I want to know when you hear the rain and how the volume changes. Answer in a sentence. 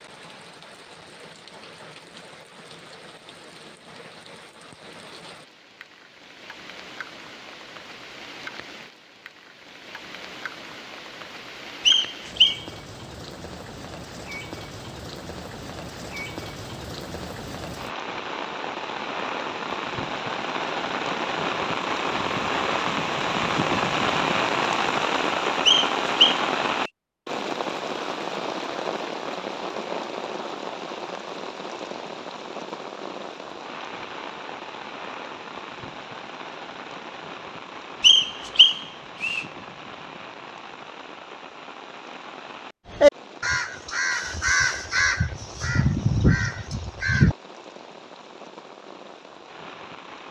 The rain can be heard from 0.0 to 50.2 s, getting louder then quieter.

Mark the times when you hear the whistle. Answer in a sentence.
You can hear the whistle from 11.8 to 12.6 s, from 25.6 to 26.4 s and from 38.0 to 39.5 s.